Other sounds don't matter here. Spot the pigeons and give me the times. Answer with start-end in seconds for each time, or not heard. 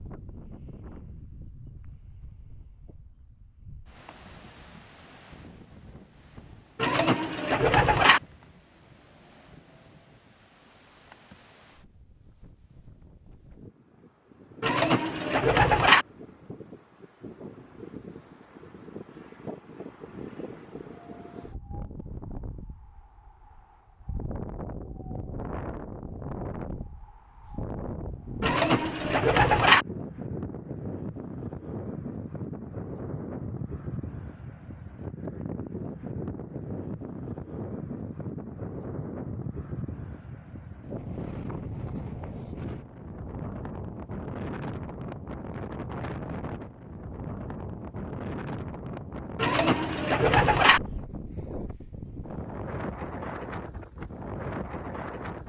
6.8-8.2, 14.6-16.1, 28.4-29.9, 49.4-50.8.